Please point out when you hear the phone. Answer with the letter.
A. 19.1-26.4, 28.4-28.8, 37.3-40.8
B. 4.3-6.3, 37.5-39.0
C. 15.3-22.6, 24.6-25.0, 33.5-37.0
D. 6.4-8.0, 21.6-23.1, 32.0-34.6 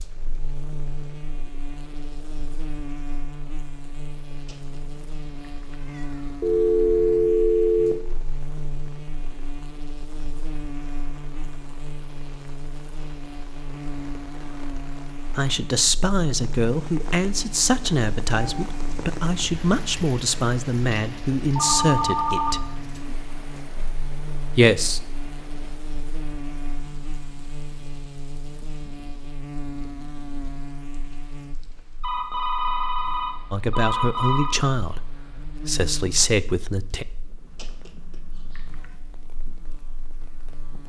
D.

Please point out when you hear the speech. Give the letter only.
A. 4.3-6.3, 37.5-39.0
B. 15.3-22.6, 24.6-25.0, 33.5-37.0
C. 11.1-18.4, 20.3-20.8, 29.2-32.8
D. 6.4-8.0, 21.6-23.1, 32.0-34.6
B.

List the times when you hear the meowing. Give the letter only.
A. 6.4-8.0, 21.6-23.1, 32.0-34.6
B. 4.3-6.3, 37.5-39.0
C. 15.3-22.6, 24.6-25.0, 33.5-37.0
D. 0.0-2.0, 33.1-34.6
B.